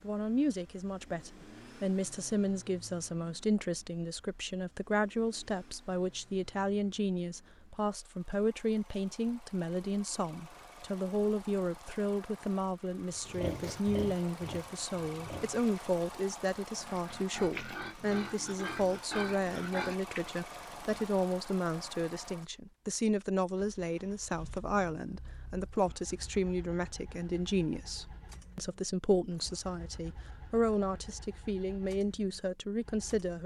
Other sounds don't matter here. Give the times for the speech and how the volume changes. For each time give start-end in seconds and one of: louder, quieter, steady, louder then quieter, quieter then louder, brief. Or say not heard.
0.0-33.4 steady.